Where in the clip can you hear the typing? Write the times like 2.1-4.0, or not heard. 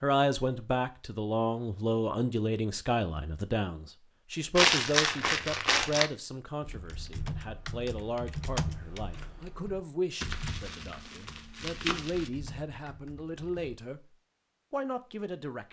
6.6-13.8.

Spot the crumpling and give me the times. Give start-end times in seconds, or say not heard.
4.5-6.1, 10.2-12.3.